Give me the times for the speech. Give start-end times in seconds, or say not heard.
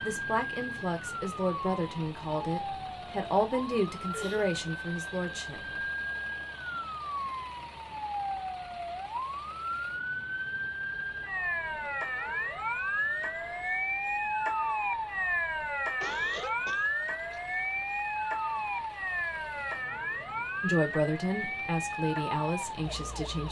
0.0-5.6, 20.6-23.4.